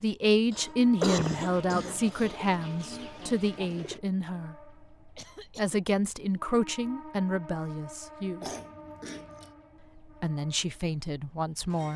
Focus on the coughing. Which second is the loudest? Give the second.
1 s.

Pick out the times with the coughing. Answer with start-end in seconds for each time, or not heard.
0.5-2.4, 5.2-5.8, 8.4-9.5.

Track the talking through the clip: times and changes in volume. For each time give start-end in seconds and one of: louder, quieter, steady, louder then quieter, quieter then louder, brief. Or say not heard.
0.0-4.5 quieter
5.5-8.4 brief
10.2-11.9 brief.